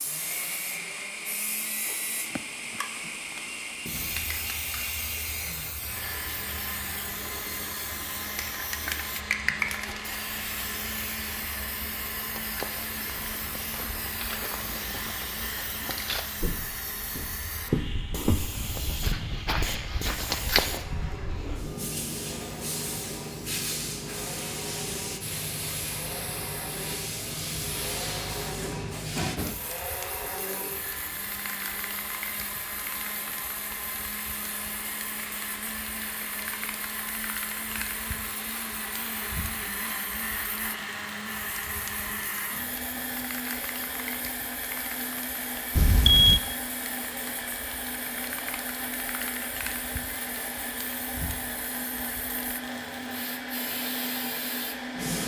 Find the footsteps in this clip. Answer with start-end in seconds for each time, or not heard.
12.3-20.9.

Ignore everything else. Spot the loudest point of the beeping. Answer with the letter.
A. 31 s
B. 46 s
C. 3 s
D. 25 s
B.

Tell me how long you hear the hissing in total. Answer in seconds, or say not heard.
55 s.